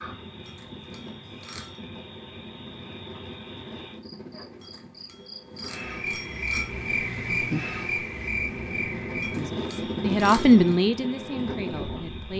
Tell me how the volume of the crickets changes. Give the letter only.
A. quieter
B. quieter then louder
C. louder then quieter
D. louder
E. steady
C.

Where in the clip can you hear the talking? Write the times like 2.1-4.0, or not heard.
9.4-12.3.